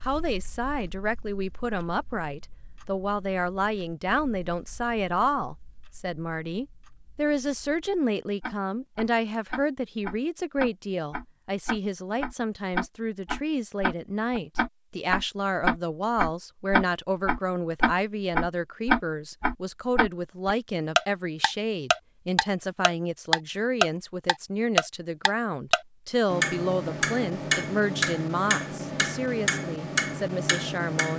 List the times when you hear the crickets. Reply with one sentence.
You can't hear the crickets here.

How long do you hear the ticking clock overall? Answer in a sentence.
You can hear the ticking clock for 31 seconds altogether.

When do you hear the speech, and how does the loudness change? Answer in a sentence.
The speech can be heard from 0.0 to 31.1 s, at a steady volume.